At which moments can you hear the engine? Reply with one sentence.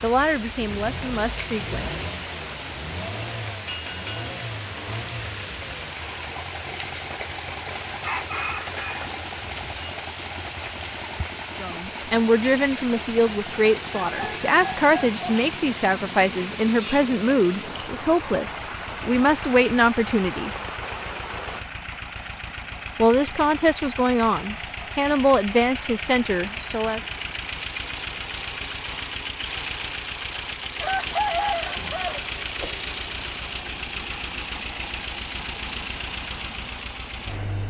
The engine can be heard from 0.0 to 37.6 s.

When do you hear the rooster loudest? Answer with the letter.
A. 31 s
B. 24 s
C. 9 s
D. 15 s
A.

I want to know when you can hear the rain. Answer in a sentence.
The rain can be heard from 0.0 to 21.6 s.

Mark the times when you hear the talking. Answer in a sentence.
You can hear the talking from 0.0 to 1.9 s, from 11.6 to 20.5 s and from 22.9 to 27.1 s.